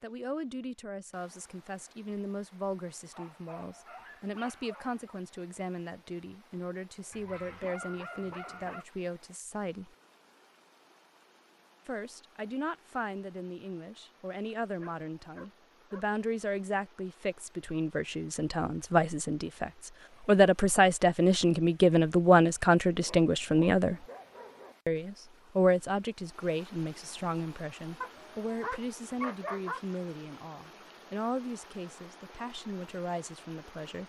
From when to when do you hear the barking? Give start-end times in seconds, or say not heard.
3.1-5.2, 7.1-8.8, 14.8-16.1, 23.1-24.8, 28.0-29.8.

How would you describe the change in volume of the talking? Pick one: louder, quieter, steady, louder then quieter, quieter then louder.
louder then quieter.